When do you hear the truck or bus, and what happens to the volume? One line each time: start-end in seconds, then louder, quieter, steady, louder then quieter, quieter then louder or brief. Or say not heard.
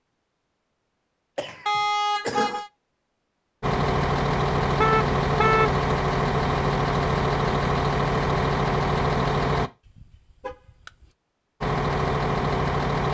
3.6-9.7 steady
11.6-13.0 brief.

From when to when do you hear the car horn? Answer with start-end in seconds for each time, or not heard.
1.6-2.7, 4.8-5.7, 9.8-11.1.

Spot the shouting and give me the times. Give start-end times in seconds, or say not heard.
not heard.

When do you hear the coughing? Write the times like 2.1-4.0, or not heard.
1.4-2.6.